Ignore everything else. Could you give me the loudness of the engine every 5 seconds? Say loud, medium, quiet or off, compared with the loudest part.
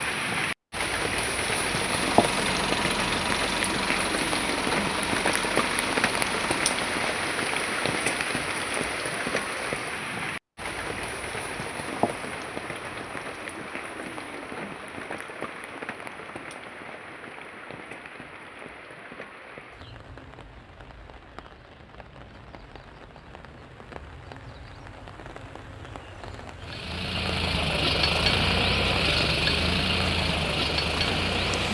medium, medium, off, off, off, loud, loud.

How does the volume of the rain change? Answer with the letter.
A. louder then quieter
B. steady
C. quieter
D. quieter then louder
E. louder
D.